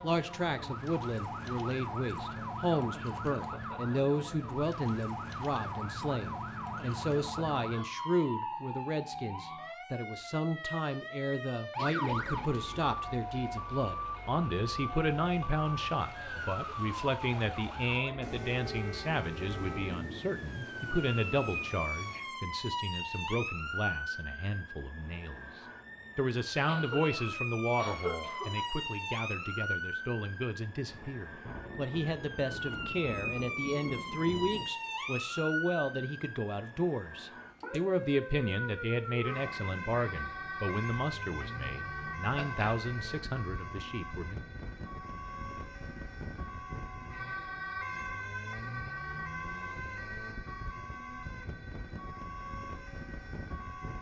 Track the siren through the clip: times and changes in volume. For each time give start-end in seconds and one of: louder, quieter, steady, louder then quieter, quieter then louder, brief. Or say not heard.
0.0-53.9 steady.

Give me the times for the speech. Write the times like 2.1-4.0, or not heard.
0.0-44.4.